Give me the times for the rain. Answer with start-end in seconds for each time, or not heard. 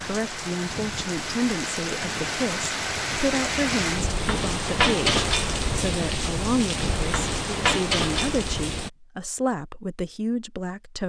0.0-8.9.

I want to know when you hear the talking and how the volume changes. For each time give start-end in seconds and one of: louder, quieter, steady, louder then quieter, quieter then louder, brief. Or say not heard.
0.0-11.0 steady.